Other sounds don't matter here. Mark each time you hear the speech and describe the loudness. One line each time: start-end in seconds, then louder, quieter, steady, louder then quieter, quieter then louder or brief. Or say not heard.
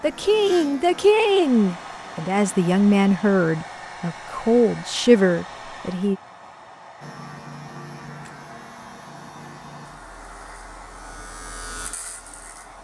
0.0-6.2 steady.